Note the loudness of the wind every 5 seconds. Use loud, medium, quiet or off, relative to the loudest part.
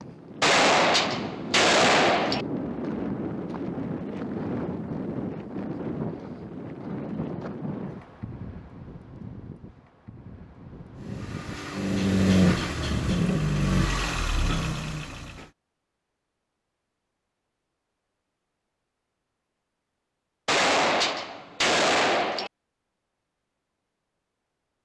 loud, loud, loud, off, off.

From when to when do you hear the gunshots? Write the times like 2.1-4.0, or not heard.
0.4-2.5, 20.4-22.5.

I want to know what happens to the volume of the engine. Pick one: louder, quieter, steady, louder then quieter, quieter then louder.
louder then quieter.